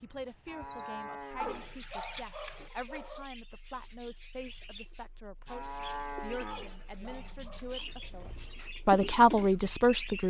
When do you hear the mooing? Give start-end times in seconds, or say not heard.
0.5-1.8, 5.5-7.2.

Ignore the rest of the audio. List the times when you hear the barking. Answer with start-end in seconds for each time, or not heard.
1.4-3.2, 6.5-8.1.